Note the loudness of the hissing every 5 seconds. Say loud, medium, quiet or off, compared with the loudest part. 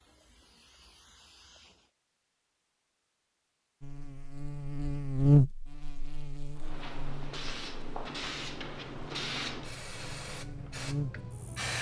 quiet, loud, loud.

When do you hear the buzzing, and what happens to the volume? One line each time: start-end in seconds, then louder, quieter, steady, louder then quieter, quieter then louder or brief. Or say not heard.
3.8-11.6 quieter then louder.